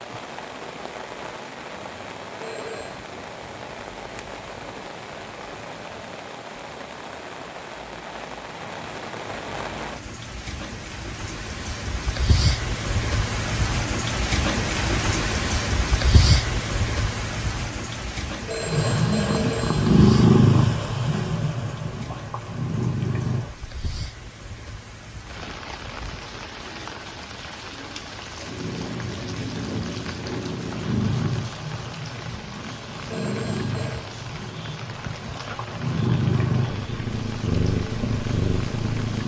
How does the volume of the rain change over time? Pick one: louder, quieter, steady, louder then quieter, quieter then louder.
louder then quieter.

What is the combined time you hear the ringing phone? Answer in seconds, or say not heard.
3 s.